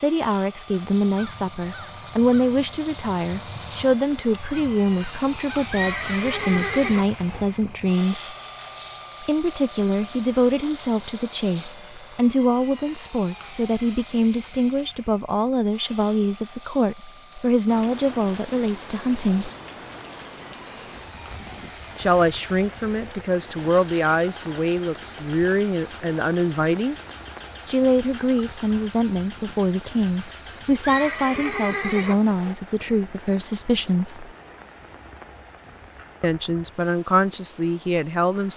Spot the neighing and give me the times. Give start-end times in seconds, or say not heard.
5.7-7.5, 30.8-32.5.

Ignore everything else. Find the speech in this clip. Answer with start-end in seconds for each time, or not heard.
0.0-8.3, 9.2-19.5, 21.9-26.9, 27.6-34.3, 36.2-38.5.